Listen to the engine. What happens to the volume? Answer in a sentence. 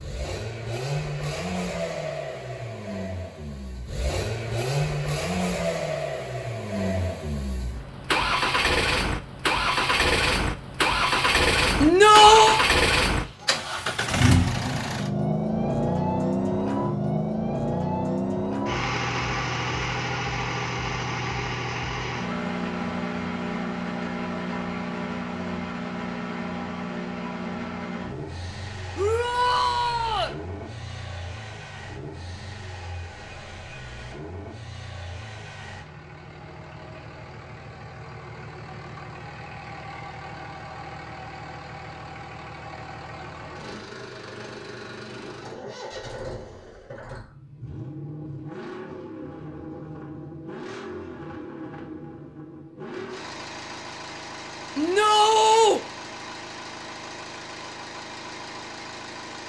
The loudness of the engine goes down.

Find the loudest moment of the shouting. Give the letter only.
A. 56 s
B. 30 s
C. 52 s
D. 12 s
D.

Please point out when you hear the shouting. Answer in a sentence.
The shouting can be heard from 11.8 to 12.6 s, from 28.9 to 30.4 s and from 54.8 to 55.8 s.